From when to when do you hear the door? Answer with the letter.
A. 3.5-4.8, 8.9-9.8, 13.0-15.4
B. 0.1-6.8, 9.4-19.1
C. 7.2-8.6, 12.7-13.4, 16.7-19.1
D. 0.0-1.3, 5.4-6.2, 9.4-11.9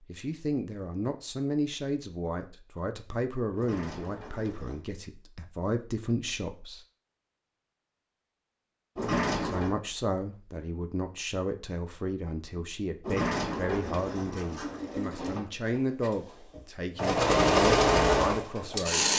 A.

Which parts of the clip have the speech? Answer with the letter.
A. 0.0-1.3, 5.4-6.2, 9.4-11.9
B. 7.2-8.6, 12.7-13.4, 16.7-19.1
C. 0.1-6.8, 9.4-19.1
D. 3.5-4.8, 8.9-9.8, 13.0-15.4
C.